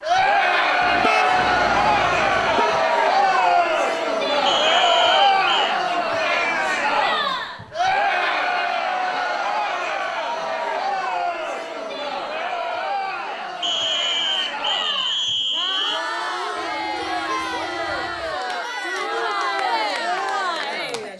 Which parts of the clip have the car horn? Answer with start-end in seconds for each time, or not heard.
0.8-2.9, 16.6-18.4.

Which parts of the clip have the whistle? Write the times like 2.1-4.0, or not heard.
4.5-5.8, 13.6-16.0.